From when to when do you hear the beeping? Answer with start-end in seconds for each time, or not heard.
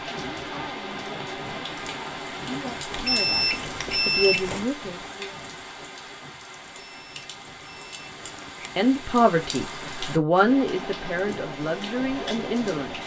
2.9-4.7, 6.8-8.7.